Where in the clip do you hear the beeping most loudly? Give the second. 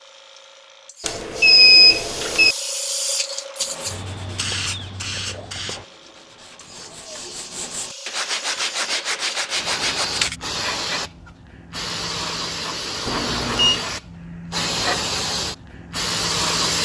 2 s.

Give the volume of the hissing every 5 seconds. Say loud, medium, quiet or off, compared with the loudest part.
medium, medium, loud, loud.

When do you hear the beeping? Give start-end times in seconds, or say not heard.
1.1-2.5, 13.1-13.8.